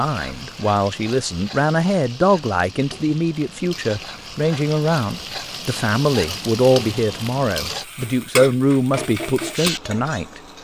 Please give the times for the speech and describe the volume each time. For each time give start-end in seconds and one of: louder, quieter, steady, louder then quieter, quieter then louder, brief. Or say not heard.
0.0-10.4 steady.